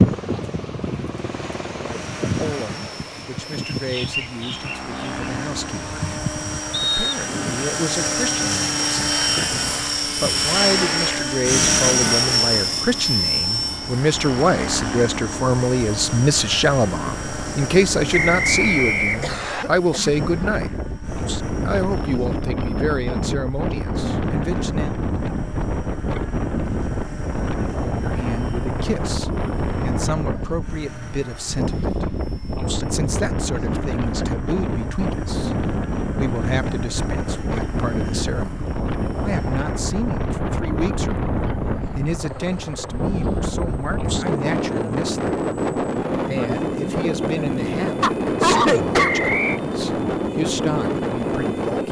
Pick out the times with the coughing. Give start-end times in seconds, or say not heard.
19.2-20.1, 48.0-49.1.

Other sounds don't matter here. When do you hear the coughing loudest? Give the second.
49 s.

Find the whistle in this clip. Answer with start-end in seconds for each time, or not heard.
6.7-7.2, 18.1-19.6, 49.0-49.6.